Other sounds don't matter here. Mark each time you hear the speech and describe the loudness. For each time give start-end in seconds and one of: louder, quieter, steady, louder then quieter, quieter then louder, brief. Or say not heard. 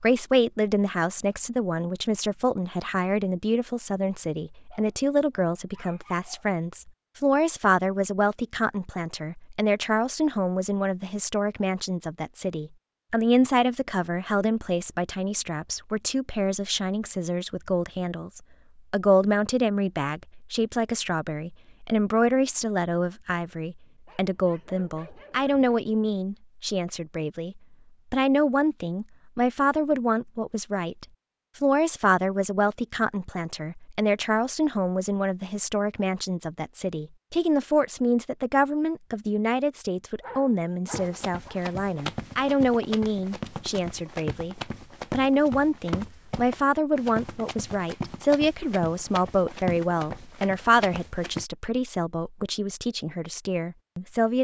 0.0-54.4 steady.